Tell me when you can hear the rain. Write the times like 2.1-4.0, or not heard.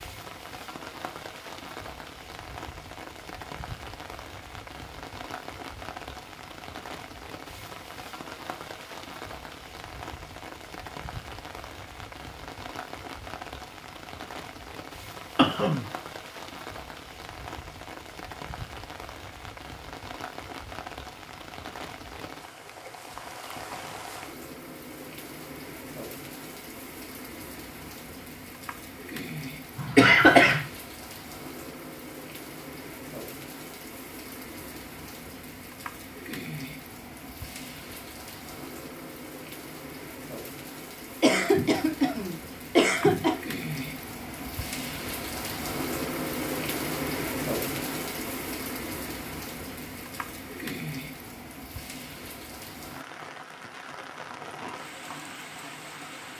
0.0-56.3.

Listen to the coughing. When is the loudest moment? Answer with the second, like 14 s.
30 s.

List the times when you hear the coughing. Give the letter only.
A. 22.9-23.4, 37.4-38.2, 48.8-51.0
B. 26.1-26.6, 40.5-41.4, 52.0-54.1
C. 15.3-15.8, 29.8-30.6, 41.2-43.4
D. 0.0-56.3
C.